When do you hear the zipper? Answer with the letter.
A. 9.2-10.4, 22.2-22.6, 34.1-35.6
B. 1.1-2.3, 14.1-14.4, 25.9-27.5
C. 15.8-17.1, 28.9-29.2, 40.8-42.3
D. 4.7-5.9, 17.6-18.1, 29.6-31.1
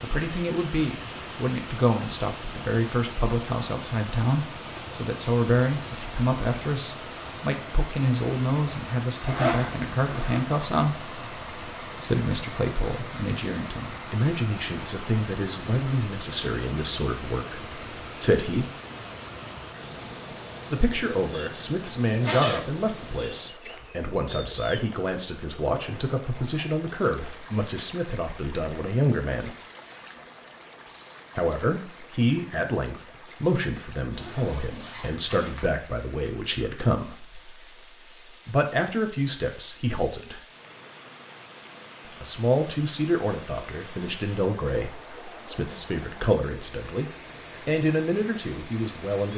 A.